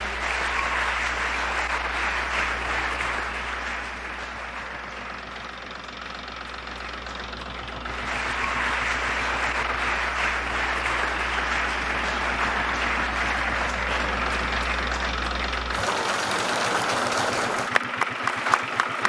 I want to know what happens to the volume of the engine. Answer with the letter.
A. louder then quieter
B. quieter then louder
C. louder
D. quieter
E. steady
C.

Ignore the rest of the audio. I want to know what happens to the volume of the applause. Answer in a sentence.
The loudness of the applause goes down, then up.